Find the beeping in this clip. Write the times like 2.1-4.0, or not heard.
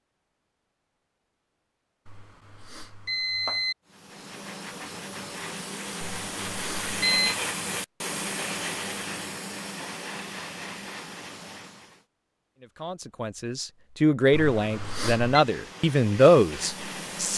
2.0-3.8, 6.0-7.3, 14.3-15.4.